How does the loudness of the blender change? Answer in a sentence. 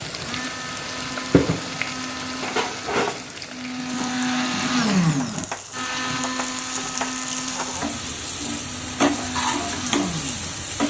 The volume of the blender goes up, then down.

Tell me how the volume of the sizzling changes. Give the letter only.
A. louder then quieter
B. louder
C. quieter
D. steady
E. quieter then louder
E.